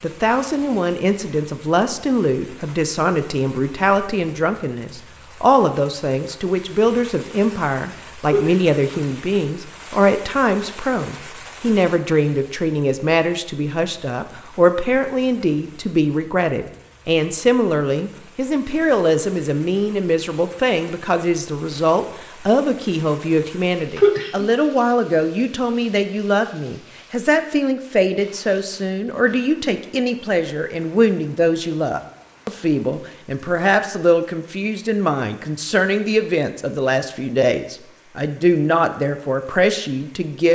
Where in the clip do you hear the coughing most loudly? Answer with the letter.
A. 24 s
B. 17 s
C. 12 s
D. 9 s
A.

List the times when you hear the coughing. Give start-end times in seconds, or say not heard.
8.2-8.8, 23.9-24.5.